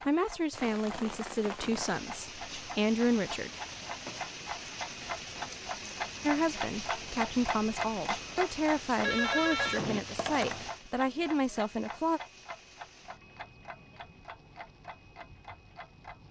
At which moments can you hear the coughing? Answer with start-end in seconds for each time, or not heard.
not heard.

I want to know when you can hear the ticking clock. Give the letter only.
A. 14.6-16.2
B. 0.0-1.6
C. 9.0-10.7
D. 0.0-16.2
D.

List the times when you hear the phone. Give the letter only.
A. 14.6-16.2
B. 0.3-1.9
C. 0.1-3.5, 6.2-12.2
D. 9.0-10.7
D.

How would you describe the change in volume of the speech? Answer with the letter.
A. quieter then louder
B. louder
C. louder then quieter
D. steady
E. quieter
D.